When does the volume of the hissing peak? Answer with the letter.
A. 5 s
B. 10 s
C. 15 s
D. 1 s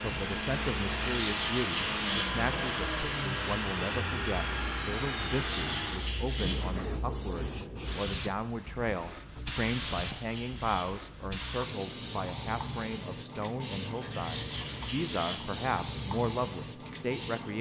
B.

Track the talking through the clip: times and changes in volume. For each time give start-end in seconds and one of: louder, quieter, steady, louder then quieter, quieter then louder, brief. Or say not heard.
0.0-17.5 steady.